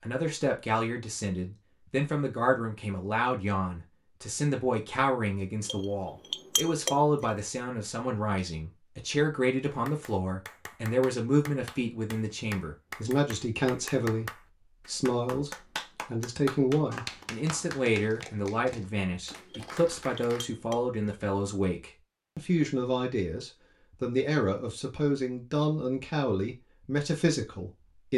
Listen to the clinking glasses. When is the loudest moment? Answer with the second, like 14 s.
7 s.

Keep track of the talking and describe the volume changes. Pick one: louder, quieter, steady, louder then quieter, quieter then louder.
steady.